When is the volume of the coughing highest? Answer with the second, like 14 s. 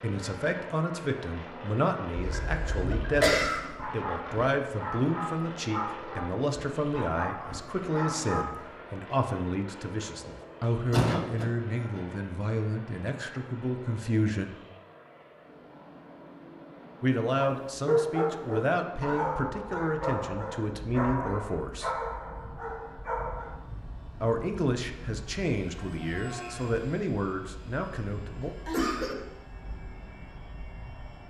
3 s.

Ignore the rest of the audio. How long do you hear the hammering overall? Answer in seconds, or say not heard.
not heard.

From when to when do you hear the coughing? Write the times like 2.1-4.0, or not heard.
2.1-3.6, 10.9-11.5, 28.6-29.1.